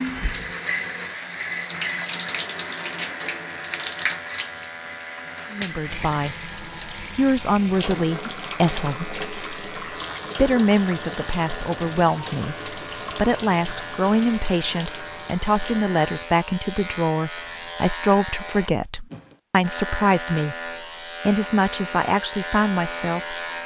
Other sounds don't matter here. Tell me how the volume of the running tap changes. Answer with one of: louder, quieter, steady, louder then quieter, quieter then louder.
quieter.